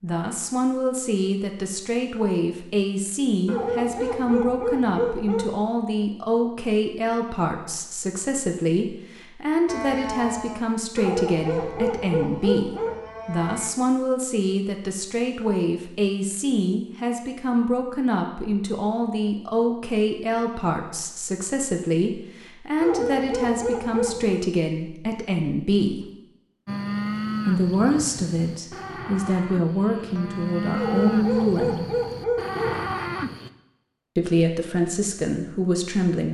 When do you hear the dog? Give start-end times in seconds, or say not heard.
3.5-5.5, 10.9-12.9, 22.8-24.4, 30.8-32.8.